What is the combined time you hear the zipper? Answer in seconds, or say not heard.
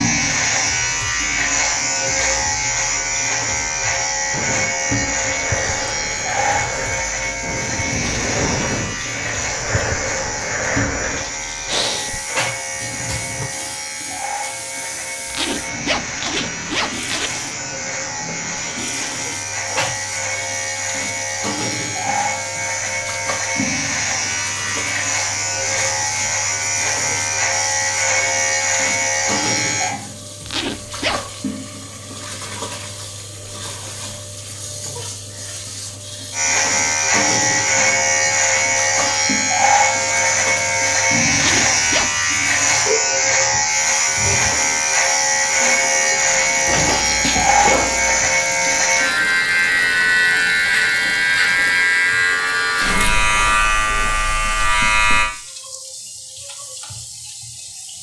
4 s.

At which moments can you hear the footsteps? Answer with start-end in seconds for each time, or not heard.
not heard.